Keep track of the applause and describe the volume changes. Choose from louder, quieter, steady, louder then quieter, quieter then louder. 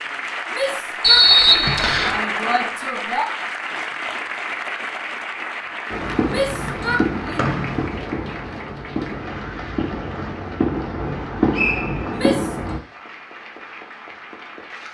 quieter.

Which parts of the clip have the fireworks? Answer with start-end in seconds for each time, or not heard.
5.9-12.8.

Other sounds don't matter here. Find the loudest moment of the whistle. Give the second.
1 s.